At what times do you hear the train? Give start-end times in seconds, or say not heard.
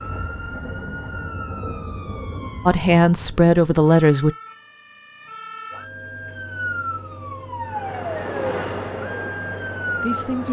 7.6-10.4.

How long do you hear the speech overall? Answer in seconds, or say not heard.
2 s.